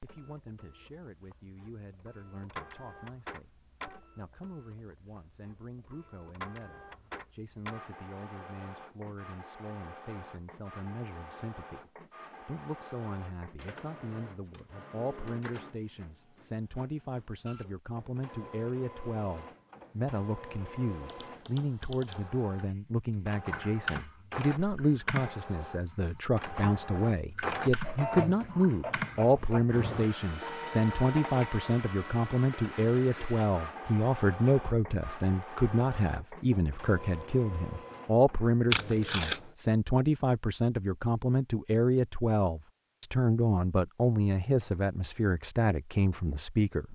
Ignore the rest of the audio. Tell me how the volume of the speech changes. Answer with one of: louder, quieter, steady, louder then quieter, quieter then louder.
louder.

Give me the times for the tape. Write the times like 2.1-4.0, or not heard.
38.7-39.4.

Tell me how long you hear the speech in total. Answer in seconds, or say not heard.
47 s.